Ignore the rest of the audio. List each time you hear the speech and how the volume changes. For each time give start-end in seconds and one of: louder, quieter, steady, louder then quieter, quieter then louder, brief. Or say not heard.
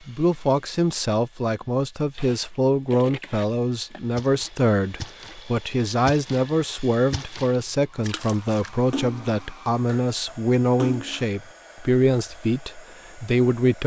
0.1-13.8 steady.